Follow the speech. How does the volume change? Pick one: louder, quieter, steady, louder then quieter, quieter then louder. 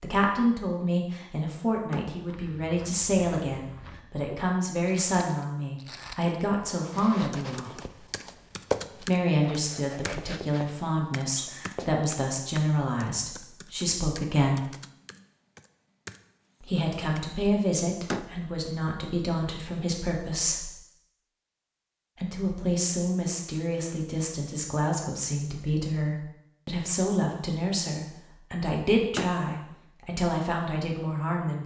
steady.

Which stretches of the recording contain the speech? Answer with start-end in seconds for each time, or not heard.
0.0-7.8, 9.0-14.7, 16.6-20.7, 22.2-31.6.